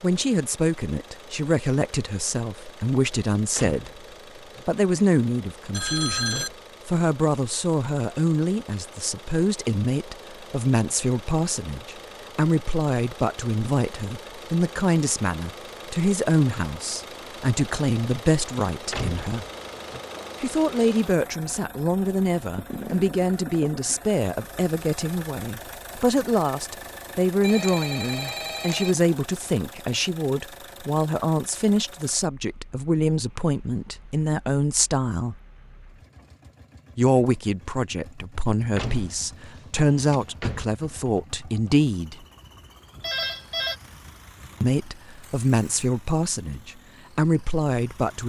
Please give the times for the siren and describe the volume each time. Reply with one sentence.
The siren can't be heard in this clip.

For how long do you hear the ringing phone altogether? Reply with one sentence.
You can hear the ringing phone for 3 seconds altogether.